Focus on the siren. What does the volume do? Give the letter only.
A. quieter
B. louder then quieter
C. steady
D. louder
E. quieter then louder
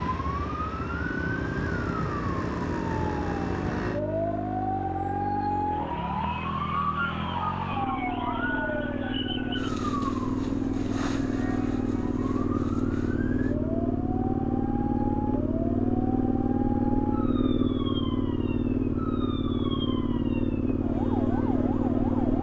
A.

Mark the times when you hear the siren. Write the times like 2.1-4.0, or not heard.
0.0-22.3.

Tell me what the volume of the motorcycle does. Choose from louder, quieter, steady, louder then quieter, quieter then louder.
louder.